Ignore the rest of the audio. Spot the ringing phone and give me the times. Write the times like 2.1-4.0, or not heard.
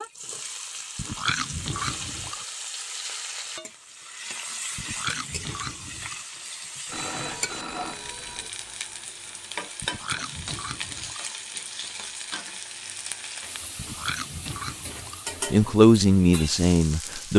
6.8-8.5.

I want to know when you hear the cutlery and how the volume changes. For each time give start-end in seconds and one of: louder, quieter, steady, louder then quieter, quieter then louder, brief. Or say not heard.
not heard.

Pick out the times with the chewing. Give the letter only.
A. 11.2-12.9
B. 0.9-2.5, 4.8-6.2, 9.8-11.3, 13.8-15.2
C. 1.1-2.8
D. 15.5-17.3
B.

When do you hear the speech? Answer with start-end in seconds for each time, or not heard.
15.5-17.3.